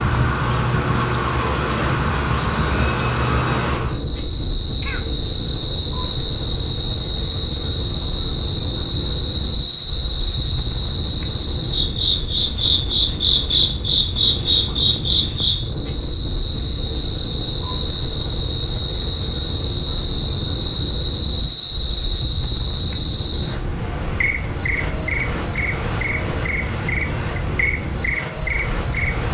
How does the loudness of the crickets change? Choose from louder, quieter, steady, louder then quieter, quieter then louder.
steady.